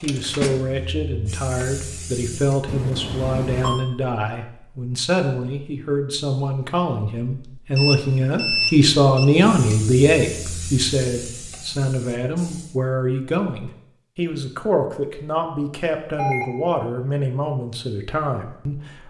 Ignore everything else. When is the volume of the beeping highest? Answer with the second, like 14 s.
9 s.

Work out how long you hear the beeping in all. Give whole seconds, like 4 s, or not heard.
3 s.